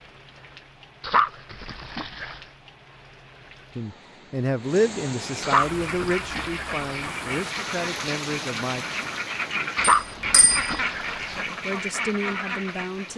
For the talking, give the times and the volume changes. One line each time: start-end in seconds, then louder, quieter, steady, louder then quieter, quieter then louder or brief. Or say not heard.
3.8-8.8 quieter
11.3-13.1 brief.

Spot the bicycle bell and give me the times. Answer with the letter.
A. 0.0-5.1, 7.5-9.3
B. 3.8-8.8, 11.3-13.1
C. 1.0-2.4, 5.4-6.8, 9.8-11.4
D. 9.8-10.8
D.